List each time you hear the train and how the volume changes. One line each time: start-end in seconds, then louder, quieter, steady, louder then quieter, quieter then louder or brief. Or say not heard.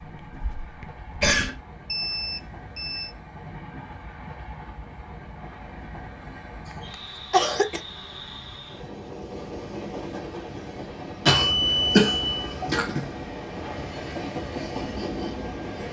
0.0-15.8 louder.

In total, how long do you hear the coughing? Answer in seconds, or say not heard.
4 s.